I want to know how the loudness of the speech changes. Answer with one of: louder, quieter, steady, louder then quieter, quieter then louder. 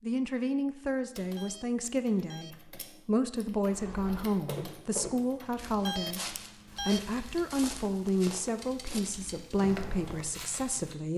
steady.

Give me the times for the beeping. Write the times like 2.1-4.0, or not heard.
1.4-2.5, 5.8-7.0.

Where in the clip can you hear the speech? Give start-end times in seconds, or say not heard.
0.0-11.1.